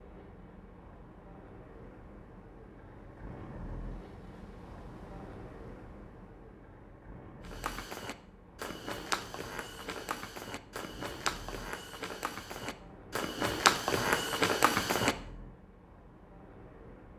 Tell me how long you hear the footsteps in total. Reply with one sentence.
You can hear the footsteps for 8 seconds altogether.